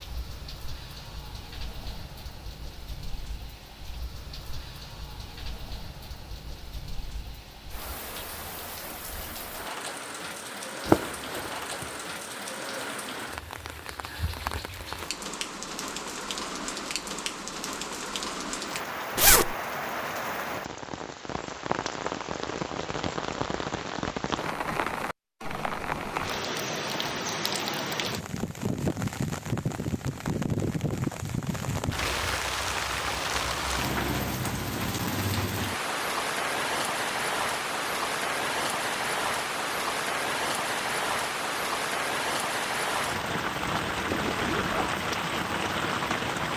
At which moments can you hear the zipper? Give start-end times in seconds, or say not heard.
10.8-11.8, 19.1-19.6, 43.9-44.9.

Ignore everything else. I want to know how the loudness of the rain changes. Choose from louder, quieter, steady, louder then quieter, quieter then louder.
louder.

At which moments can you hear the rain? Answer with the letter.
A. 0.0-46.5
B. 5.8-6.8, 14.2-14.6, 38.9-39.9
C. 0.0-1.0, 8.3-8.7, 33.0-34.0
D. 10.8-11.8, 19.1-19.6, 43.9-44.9
A.